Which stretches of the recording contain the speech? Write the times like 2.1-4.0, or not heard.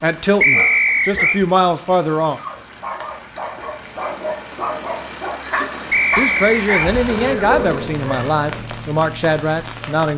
0.0-2.4, 6.2-10.1.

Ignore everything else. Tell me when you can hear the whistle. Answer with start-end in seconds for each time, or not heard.
0.4-1.4, 5.9-6.9.